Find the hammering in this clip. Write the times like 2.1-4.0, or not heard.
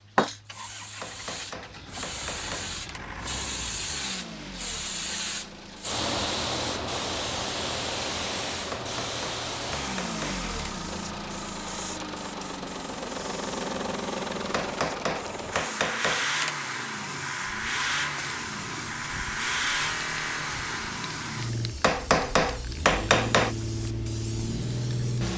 1.0-2.8, 8.7-10.4, 14.5-16.6, 21.8-23.6.